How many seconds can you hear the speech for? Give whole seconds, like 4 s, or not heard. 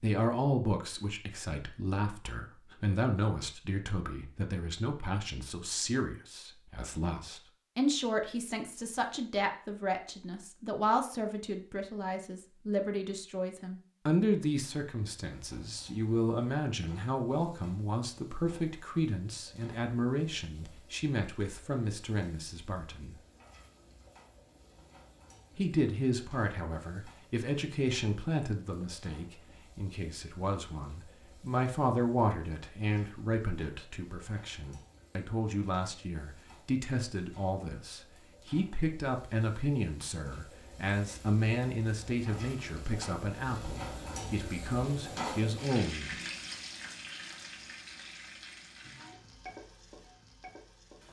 44 s.